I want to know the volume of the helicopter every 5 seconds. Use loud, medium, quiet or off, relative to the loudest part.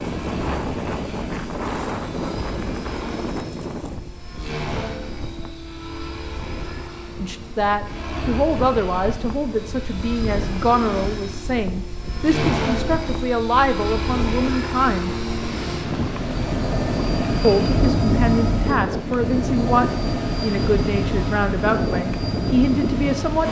medium, medium, loud, loud, loud.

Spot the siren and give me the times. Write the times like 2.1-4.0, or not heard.
not heard.